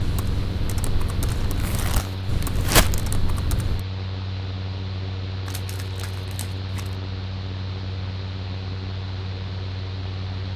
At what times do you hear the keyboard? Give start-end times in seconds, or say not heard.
0.0-3.9.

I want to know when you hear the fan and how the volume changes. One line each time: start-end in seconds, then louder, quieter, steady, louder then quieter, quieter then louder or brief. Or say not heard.
0.0-10.5 steady.